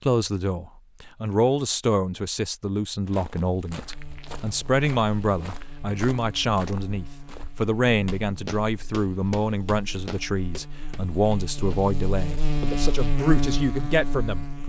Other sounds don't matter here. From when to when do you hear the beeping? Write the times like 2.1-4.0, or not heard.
not heard.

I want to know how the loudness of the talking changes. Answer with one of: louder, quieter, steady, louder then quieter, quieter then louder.
steady.